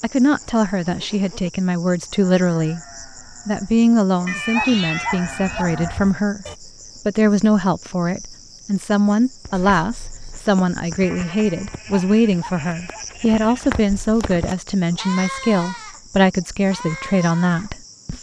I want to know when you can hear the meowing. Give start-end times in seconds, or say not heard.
4.2-5.7, 9.5-10.5.